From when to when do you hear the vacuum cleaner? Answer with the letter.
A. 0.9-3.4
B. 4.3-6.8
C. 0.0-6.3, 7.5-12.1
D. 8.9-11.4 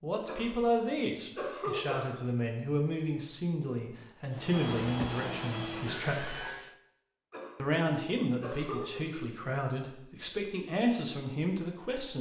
B.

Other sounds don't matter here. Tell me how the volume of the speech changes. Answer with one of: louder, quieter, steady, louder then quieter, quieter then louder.
steady.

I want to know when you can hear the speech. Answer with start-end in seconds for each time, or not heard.
0.0-6.3, 7.5-12.1.